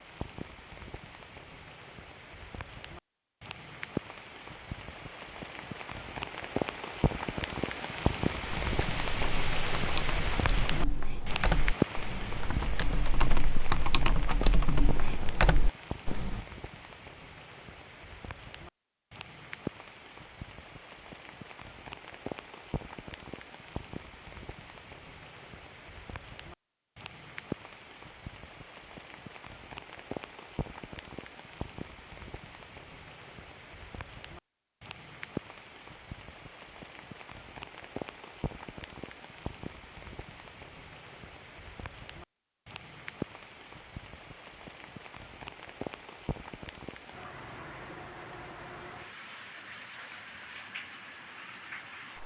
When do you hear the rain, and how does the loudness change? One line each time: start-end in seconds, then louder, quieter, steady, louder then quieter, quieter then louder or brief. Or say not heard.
0.0-52.2 quieter.